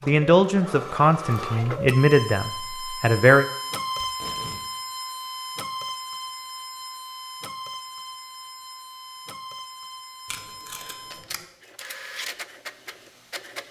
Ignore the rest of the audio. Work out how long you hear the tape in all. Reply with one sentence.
You can hear the tape for 2 seconds altogether.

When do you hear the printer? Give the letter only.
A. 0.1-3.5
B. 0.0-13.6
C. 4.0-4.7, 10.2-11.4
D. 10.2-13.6
B.